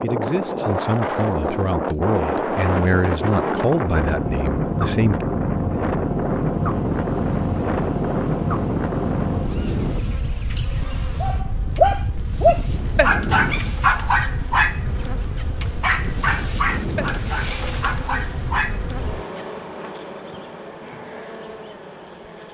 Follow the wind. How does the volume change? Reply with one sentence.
The loudness of the wind goes down.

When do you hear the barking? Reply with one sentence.
The barking can be heard from 11.2 to 19.4 s.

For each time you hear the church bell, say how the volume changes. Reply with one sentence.
The church bell can't be heard in this clip.